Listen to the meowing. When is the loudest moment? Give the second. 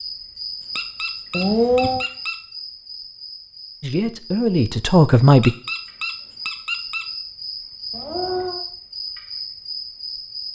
2 s.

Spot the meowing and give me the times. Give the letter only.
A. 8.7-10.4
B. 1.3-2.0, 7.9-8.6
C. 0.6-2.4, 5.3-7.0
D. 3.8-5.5
B.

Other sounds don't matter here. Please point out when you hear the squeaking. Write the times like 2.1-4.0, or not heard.
0.6-2.4, 5.3-7.0.